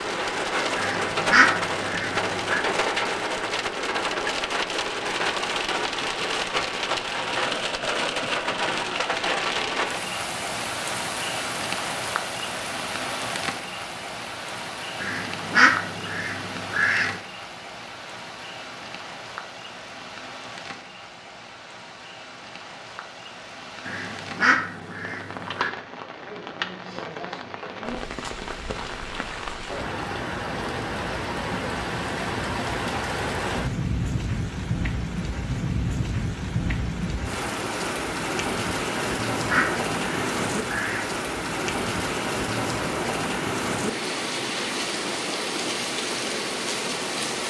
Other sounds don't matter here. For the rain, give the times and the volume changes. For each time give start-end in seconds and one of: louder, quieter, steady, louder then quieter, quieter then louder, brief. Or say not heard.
0.0-47.4 quieter then louder.